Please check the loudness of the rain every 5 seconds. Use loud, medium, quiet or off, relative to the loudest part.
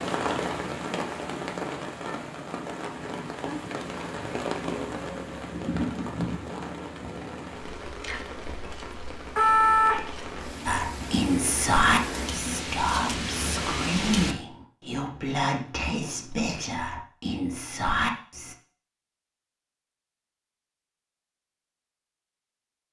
loud, loud, loud, off, off.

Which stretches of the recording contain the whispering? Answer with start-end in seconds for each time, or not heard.
10.7-18.6.